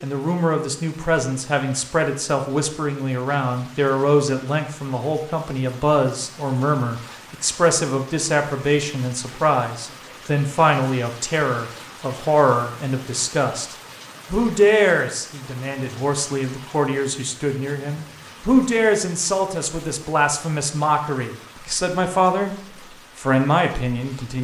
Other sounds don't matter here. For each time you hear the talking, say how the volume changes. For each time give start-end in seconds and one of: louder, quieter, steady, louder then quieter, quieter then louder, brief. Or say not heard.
0.0-24.3 steady.